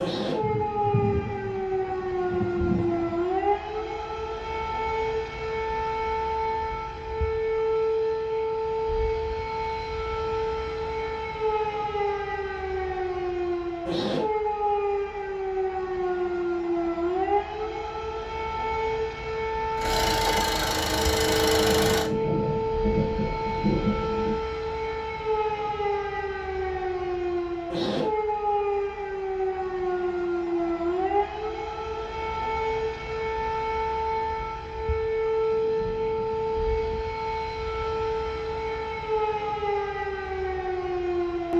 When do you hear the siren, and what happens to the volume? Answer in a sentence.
The siren can be heard from 0.0 to 41.5 s, at a steady volume.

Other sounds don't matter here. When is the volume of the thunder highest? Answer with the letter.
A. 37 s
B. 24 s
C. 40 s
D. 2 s
B.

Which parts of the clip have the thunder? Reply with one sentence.
You can hear the thunder from 0.4 to 3.2 s, from 21.2 to 24.4 s and from 35.5 to 37.0 s.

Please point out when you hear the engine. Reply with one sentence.
You can hear the engine from 19.8 to 22.1 s.